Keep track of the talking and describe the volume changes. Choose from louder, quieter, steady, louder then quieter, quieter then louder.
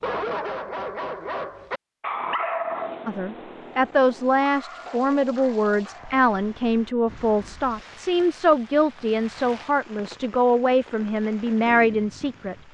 steady.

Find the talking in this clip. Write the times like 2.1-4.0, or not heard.
3.0-12.6.